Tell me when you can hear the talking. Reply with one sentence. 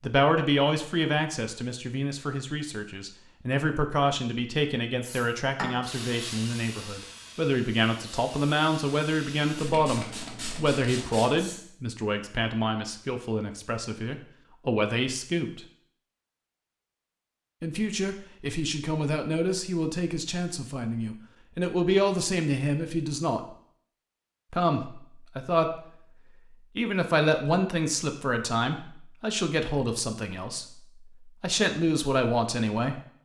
The talking can be heard from 0.0 to 15.7 s, from 17.6 to 23.6 s, from 24.5 to 25.8 s and from 26.8 to 33.0 s.